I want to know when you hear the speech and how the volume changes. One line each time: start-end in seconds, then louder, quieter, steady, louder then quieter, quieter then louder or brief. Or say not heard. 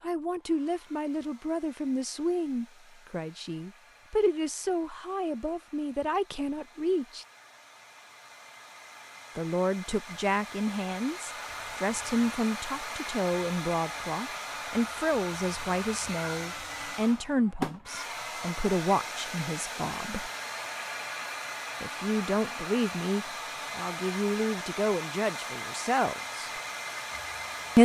0.0-7.2 steady
9.3-20.3 steady
21.8-26.5 steady.